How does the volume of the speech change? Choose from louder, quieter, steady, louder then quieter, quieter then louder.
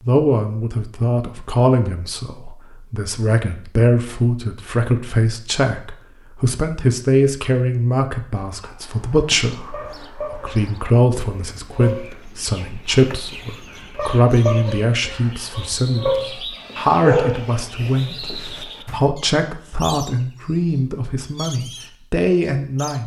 steady.